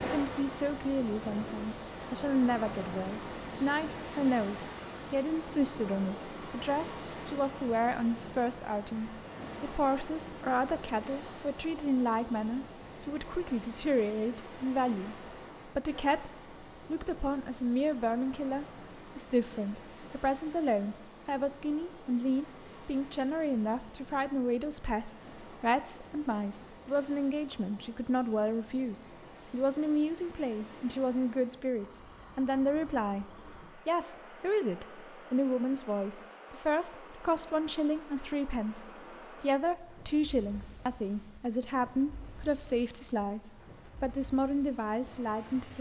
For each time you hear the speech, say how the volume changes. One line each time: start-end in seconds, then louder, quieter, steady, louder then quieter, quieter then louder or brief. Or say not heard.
0.0-45.7 steady.